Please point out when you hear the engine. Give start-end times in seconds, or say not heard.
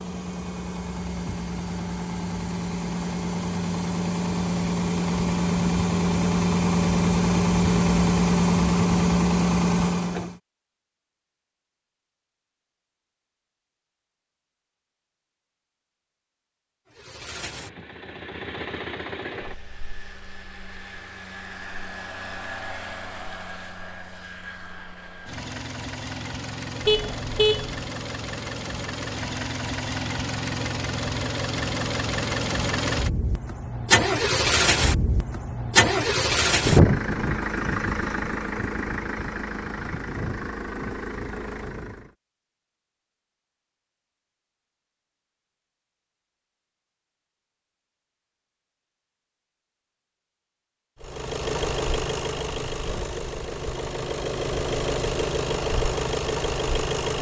0.0-10.4, 16.9-42.1, 51.0-57.1.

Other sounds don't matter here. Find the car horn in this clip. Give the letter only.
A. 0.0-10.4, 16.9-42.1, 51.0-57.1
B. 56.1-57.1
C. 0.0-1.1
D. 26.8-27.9
D.